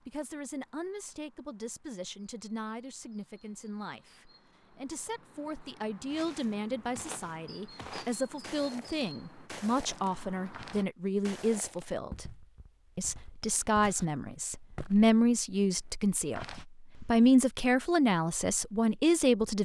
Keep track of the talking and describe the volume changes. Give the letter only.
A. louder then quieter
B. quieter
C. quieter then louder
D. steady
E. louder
E.